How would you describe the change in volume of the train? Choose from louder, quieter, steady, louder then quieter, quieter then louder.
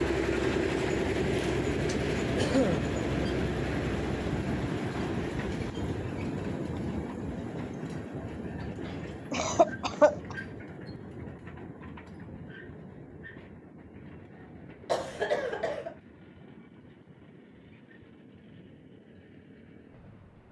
quieter.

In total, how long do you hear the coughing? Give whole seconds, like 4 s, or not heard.
3 s.